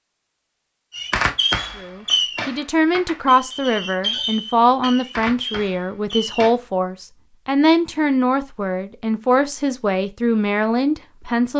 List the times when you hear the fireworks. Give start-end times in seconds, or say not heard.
0.9-6.5.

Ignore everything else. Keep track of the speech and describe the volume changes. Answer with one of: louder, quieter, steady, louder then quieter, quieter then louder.
steady.